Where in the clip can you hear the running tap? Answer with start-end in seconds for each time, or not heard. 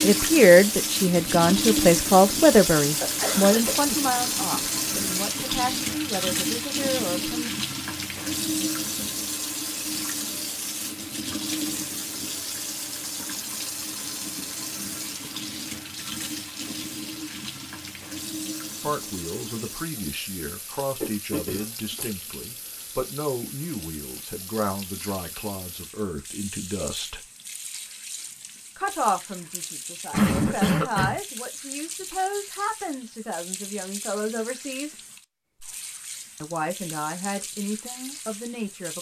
0.0-38.9.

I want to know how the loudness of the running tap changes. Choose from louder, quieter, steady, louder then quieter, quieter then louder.
quieter.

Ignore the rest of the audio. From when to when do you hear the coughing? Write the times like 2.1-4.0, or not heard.
2.8-4.1, 21.0-22.1, 30.1-31.2.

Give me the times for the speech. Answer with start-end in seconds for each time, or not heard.
0.0-7.5, 18.8-27.2, 28.8-35.0, 36.4-38.9.